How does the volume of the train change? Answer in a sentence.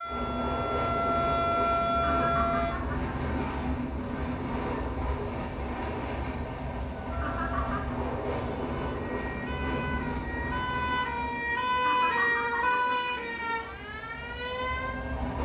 The loudness of the train goes down.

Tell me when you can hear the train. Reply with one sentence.
The train can be heard from 0.0 to 15.4 s.